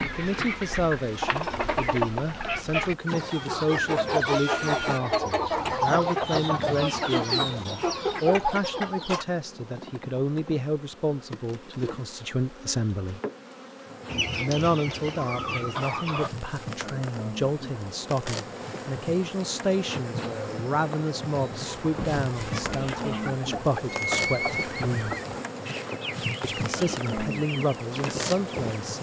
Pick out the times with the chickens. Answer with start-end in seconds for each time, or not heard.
0.0-9.2, 14.1-16.3, 21.6-28.8.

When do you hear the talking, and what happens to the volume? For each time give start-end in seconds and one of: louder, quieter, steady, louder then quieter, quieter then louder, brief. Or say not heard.
0.0-13.2 steady
14.3-25.1 steady
26.4-28.9 brief.